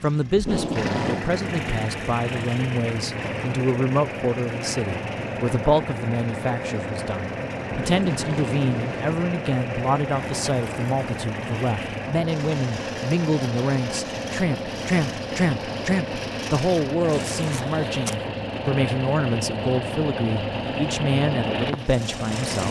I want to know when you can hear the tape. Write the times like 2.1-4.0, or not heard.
0.3-1.3, 7.7-9.2, 17.4-18.2.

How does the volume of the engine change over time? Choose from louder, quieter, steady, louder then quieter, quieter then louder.
steady.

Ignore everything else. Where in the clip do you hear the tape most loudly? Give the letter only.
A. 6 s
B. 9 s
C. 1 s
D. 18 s
C.